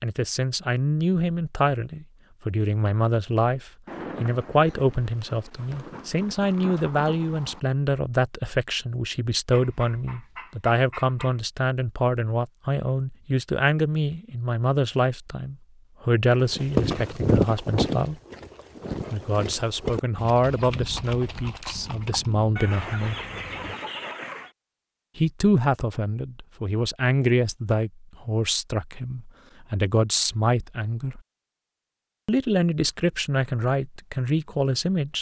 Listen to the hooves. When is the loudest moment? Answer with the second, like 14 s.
17 s.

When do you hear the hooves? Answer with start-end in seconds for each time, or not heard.
16.4-22.4.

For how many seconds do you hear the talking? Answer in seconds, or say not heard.
31 s.